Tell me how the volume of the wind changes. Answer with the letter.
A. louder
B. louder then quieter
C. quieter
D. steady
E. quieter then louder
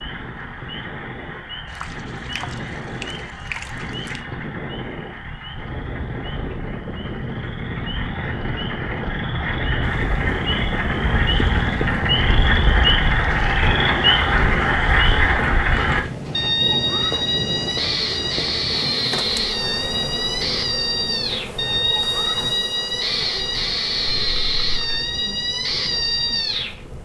B.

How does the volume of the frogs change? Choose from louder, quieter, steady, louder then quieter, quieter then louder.
louder.